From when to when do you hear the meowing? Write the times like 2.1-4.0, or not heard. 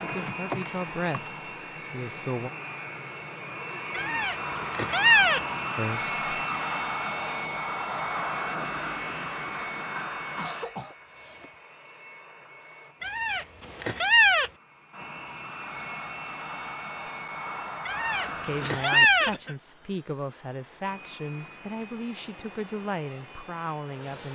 3.9-5.4, 13.0-14.5, 17.9-19.3.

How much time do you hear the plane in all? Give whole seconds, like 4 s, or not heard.
24 s.